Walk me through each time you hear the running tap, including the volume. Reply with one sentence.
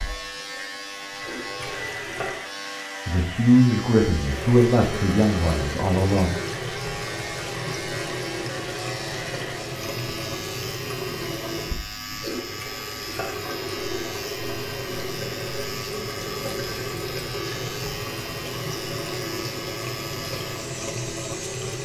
You can hear the running tap briefly from 0.0 to 2.4 s; and from 4.2 to 21.7 s, at a steady volume.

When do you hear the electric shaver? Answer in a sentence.
You can hear the electric shaver from 0.0 to 21.7 s.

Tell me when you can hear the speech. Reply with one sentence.
You can hear the speech from 3.0 to 6.3 s.